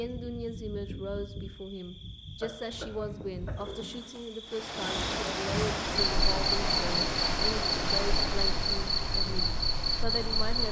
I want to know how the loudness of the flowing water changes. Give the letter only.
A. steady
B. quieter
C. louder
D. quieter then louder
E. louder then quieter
B.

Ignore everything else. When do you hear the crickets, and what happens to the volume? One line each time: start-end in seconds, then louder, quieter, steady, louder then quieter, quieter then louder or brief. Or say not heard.
0.0-10.6 louder.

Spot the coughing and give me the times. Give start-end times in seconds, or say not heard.
2.4-4.2.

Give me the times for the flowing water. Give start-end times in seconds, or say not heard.
4.5-10.6.